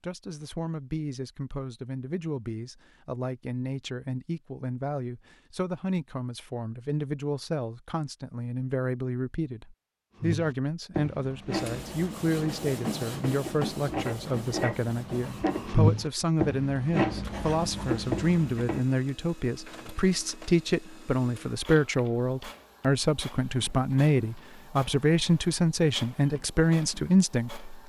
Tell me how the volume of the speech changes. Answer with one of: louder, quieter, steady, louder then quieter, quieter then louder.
louder.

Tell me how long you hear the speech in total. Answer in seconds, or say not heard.
28 s.